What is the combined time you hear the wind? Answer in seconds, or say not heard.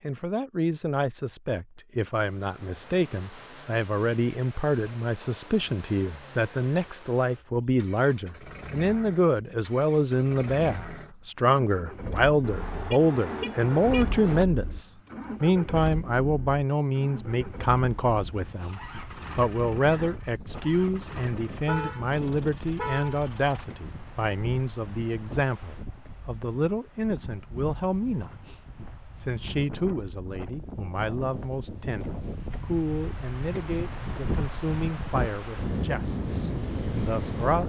20 s.